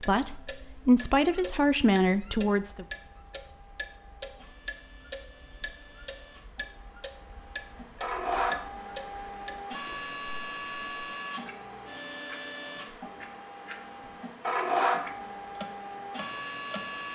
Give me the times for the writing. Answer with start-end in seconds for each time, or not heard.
not heard.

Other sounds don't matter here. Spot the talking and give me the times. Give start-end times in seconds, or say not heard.
0.0-2.9.